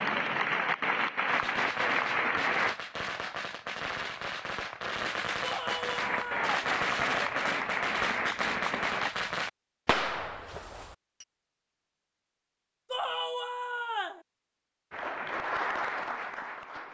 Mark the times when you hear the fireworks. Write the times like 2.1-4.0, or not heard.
1.2-11.2.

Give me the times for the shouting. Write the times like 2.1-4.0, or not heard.
5.4-6.5, 12.9-14.2.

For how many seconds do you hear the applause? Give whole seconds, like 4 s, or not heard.
8 s.